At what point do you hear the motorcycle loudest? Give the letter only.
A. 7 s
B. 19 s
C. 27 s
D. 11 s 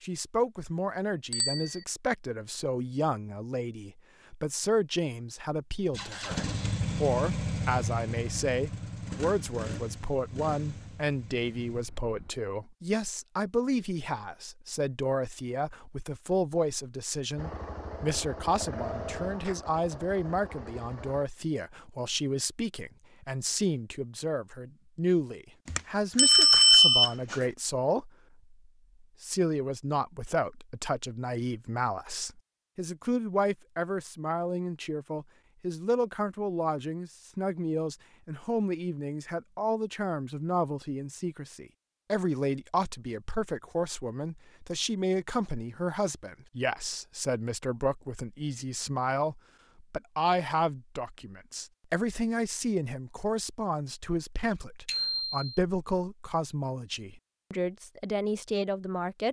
A.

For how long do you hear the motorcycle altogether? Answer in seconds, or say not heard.
10 s.